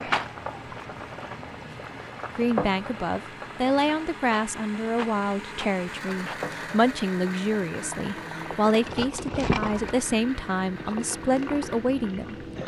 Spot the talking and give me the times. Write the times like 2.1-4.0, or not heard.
2.4-12.3.